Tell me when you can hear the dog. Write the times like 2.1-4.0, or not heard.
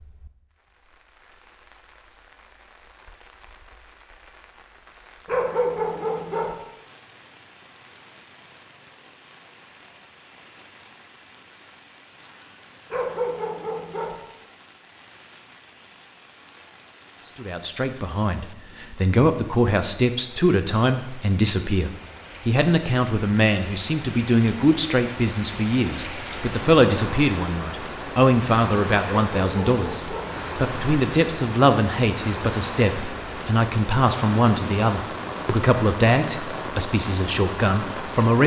5.2-6.5, 12.9-14.2, 29.1-30.3.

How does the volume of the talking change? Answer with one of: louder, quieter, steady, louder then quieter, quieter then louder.
steady.